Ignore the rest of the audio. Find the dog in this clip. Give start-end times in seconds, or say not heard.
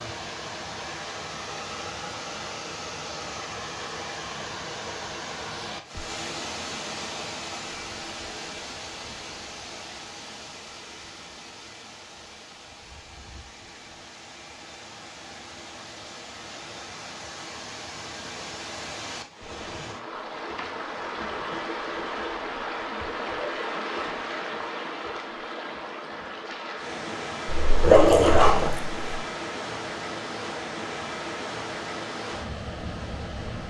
27.4-29.0.